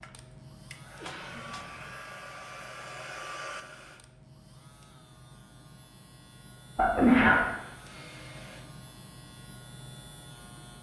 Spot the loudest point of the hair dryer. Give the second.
3 s.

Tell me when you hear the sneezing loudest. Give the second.
7 s.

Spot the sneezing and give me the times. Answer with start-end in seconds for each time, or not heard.
1.0-1.8, 6.8-7.4.